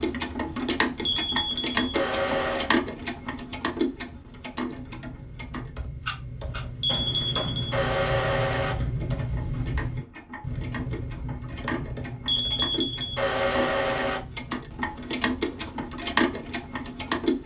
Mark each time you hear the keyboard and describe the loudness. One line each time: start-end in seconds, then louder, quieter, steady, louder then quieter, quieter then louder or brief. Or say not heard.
4.7-14.8 louder then quieter.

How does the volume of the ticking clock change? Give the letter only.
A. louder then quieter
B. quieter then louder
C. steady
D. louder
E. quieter
B.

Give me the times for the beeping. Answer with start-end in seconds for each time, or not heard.
1.0-2.7, 6.8-8.8, 12.2-14.2.